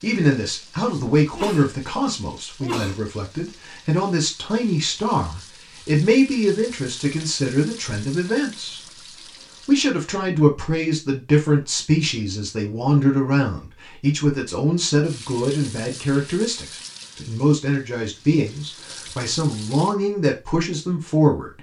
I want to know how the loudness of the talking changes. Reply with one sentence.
The volume of the talking stays about the same.